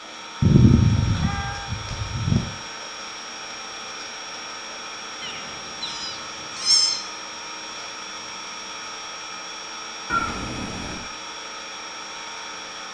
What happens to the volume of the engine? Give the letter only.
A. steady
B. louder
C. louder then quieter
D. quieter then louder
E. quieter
A.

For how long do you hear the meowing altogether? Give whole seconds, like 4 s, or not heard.
5 s.